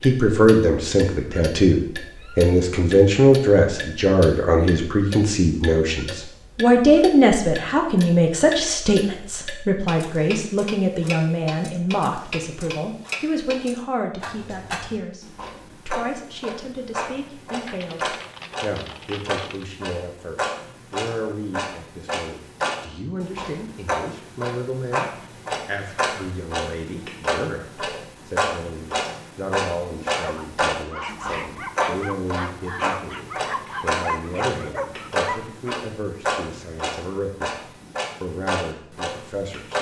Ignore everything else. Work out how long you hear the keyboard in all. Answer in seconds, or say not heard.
2 s.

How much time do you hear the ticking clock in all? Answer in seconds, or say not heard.
40 s.